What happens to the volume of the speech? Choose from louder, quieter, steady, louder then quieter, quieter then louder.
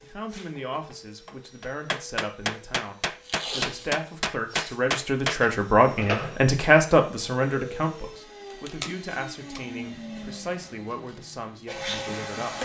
louder then quieter.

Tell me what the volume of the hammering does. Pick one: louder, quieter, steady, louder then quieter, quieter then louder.
louder.